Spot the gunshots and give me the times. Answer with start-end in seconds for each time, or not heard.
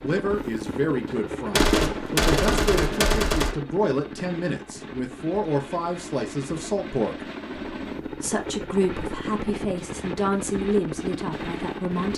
1.5-3.5.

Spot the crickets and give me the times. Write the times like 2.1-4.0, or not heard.
not heard.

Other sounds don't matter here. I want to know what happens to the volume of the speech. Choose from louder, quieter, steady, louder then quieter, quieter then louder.
steady.